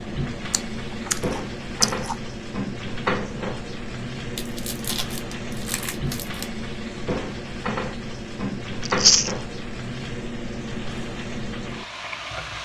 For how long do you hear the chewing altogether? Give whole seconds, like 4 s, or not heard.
4 s.